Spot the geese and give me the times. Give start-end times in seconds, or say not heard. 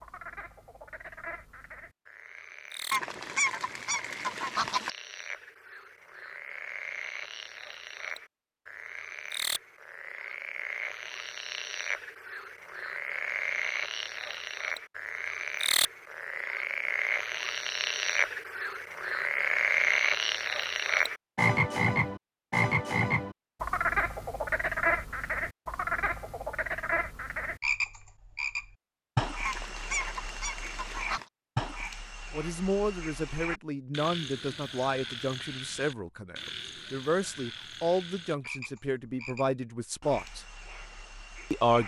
2.9-4.9, 29.4-31.2.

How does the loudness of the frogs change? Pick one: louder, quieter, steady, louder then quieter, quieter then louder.
louder then quieter.